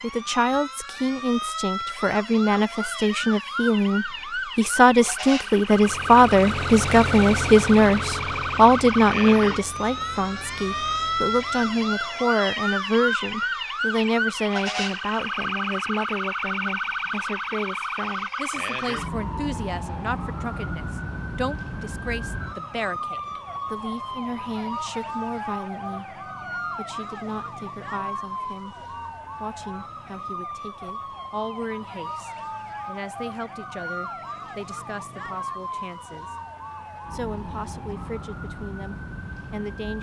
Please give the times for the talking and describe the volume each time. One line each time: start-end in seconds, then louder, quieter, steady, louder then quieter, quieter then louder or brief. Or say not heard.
0.0-36.4 quieter
37.1-39.9 brief.